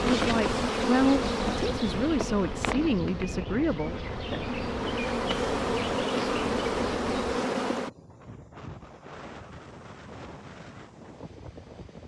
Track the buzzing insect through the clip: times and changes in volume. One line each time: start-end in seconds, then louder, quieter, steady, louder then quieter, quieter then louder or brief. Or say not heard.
0.0-7.9 quieter then louder.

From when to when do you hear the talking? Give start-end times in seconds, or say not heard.
0.1-4.5.